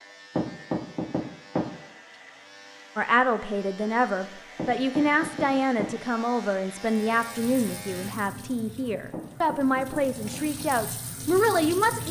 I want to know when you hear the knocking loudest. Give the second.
1 s.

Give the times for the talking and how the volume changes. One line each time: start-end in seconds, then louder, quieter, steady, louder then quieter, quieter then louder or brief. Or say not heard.
3.0-12.0 steady.